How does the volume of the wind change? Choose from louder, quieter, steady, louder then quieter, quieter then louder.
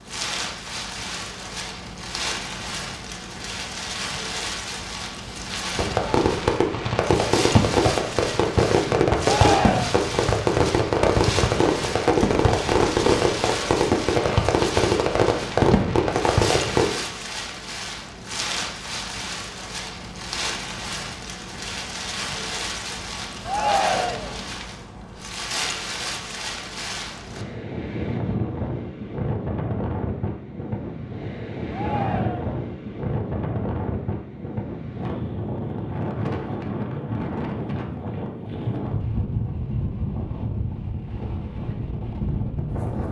steady.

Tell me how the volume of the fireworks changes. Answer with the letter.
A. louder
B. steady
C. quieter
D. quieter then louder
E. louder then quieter
B.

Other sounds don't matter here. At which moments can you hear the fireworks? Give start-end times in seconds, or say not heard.
5.8-16.9.